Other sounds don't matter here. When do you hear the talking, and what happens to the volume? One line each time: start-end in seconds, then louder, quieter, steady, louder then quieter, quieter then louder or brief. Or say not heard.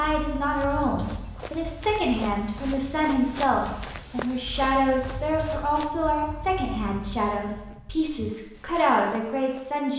0.0-9.9 steady.